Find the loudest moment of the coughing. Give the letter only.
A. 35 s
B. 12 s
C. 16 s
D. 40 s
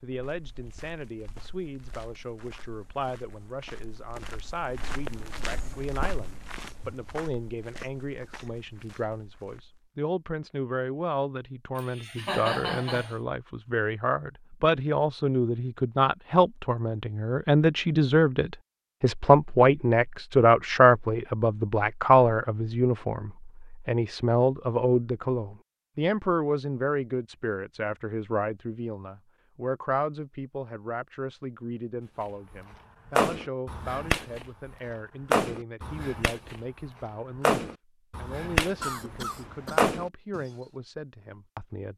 B.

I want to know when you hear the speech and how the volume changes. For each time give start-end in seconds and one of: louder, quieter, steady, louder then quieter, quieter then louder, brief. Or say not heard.
0.0-41.9 louder then quieter.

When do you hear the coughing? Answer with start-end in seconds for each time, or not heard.
11.8-13.2, 38.8-39.9.